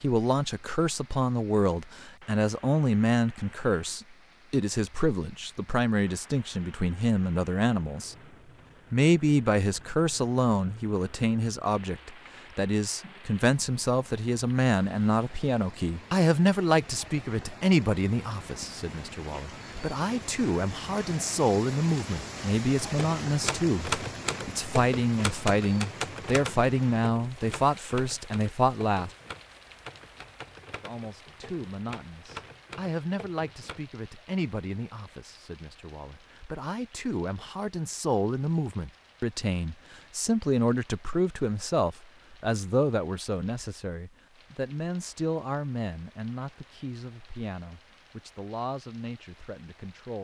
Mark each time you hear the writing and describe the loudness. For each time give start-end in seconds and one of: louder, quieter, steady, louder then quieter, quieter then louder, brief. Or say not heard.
not heard.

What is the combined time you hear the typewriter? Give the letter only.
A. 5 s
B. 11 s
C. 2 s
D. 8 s
B.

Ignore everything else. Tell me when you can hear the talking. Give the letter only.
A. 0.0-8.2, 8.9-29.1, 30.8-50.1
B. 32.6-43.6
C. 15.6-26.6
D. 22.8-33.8
A.